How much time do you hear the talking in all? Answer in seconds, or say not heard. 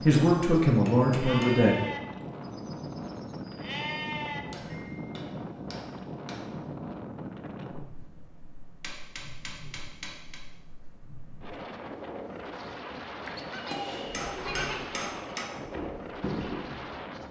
2 s.